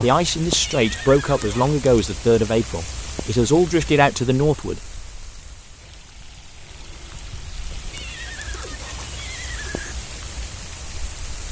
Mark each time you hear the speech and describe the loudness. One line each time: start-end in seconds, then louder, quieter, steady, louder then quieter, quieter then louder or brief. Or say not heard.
0.0-4.9 steady.